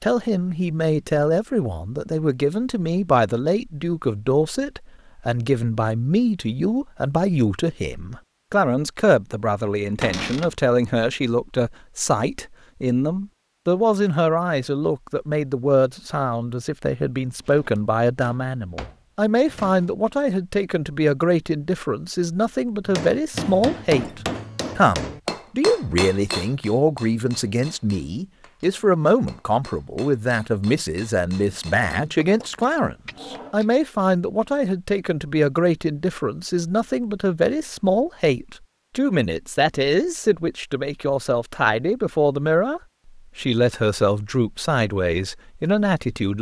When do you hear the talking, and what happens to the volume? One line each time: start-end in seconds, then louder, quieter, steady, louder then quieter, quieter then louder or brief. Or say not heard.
0.0-46.3 steady.